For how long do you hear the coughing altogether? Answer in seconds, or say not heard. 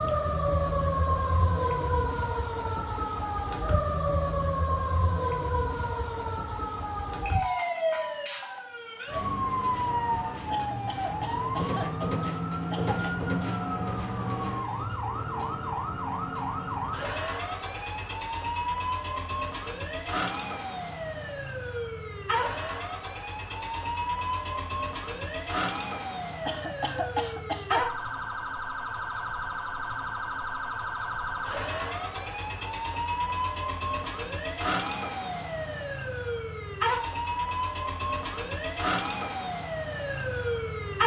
4 s.